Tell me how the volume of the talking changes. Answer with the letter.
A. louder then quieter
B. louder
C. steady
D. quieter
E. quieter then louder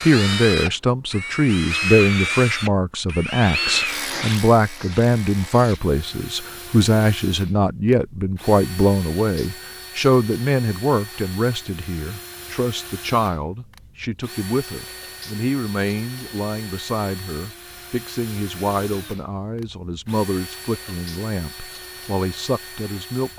D.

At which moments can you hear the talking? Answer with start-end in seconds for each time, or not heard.
0.0-23.3.